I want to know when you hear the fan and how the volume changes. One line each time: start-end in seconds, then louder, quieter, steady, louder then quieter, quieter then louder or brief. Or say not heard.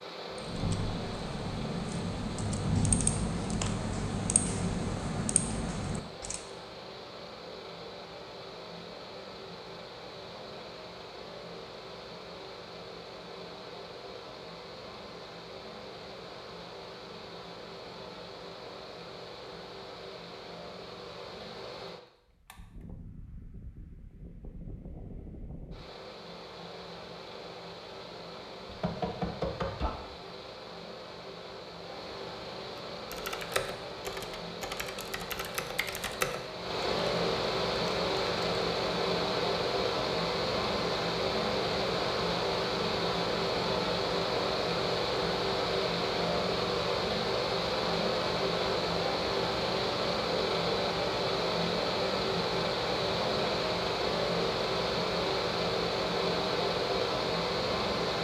0.0-58.1 louder.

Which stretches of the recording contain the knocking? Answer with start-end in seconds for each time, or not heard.
28.6-29.9.